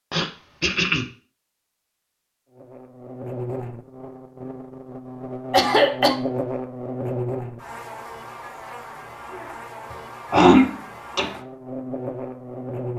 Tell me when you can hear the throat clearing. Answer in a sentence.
The throat clearing can be heard from 0.1 to 1.1 s, from 5.5 to 6.2 s and from 10.3 to 11.3 s.